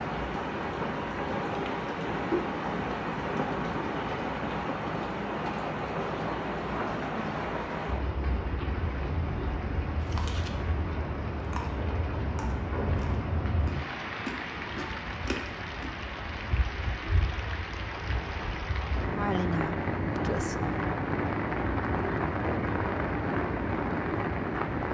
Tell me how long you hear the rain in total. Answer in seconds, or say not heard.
25 s.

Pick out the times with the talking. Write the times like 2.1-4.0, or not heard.
19.1-20.7.